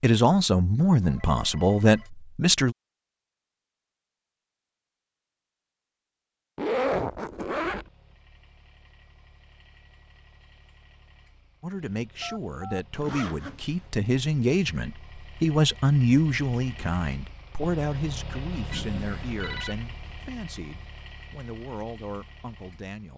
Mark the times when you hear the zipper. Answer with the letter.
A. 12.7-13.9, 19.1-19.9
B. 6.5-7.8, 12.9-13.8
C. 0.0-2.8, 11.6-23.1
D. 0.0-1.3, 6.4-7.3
B.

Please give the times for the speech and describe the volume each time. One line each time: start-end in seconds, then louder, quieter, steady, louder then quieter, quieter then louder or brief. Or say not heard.
0.0-2.8 brief
11.6-23.1 louder then quieter.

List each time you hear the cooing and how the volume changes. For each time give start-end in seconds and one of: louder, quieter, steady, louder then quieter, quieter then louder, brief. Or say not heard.
not heard.